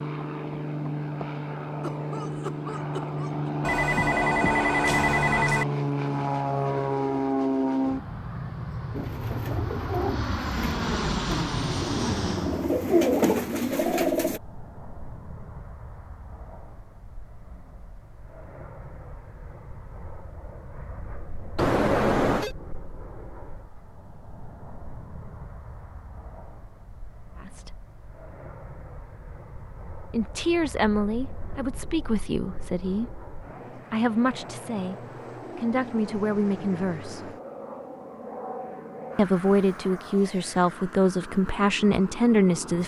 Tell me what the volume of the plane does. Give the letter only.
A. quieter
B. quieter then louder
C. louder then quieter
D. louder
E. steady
B.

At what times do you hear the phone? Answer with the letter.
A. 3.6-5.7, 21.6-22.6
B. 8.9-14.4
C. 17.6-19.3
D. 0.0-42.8
A.